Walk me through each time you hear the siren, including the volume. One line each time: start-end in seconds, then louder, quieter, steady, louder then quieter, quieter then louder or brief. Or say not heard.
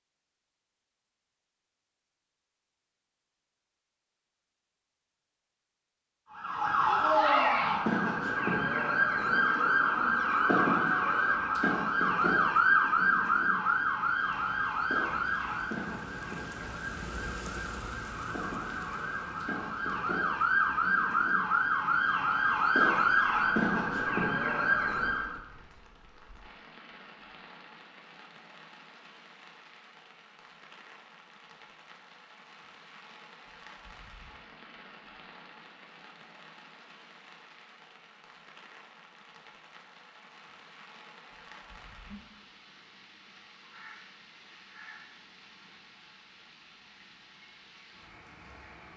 6.3-25.4 quieter then louder.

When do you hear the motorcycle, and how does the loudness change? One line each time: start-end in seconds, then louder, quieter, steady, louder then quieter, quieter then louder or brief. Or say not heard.
not heard.